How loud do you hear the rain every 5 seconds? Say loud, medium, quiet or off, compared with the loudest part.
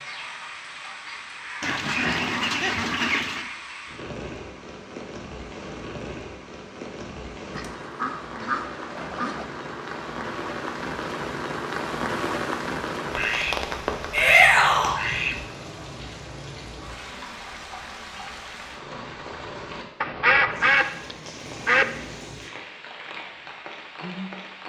medium, medium, loud, medium, medium.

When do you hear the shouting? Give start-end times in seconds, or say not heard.
14.1-14.9.